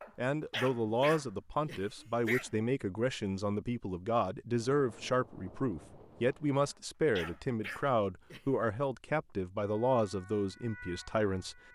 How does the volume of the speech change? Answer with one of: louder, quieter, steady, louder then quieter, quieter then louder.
steady.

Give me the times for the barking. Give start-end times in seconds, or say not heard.
0.0-2.6, 6.6-8.4.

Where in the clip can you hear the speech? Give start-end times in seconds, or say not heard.
0.1-11.6.